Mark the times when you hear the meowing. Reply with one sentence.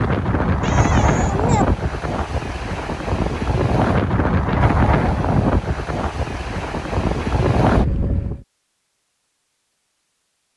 You can hear the meowing from 0.6 to 1.6 s.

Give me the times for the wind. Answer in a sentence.
The wind can be heard from 0.0 to 8.4 s.